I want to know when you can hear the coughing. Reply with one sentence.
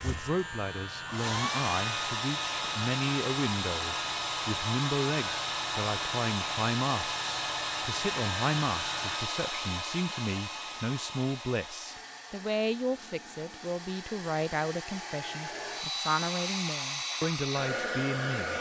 The coughing can't be heard in this clip.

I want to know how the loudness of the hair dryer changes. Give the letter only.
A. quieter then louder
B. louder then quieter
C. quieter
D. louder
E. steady
A.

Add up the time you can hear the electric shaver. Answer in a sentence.
You can hear the electric shaver for 9 seconds altogether.